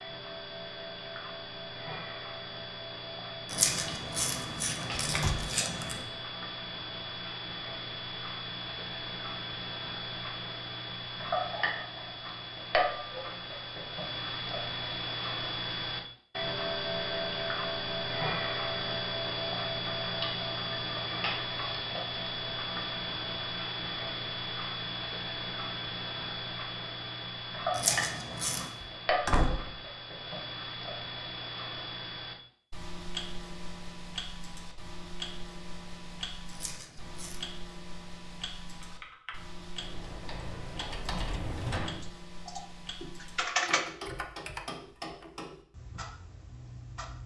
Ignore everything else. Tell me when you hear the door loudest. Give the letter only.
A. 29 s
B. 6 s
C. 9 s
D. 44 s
A.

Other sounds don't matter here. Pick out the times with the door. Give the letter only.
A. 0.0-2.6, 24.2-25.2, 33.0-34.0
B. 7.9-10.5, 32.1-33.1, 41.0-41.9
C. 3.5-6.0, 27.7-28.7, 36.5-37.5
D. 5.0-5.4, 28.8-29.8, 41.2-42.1
D.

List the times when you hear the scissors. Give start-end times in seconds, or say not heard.
3.5-6.0, 27.7-28.7, 36.5-37.5.